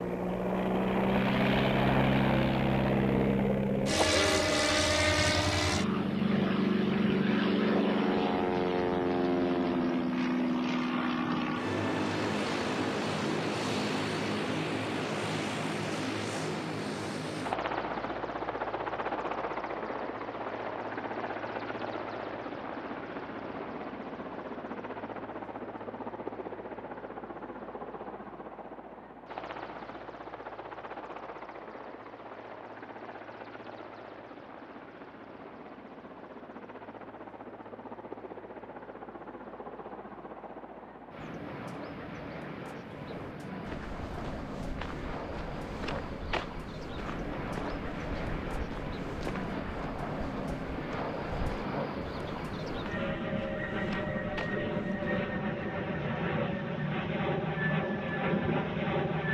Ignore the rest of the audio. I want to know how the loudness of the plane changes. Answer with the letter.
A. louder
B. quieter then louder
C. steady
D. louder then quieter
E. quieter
B.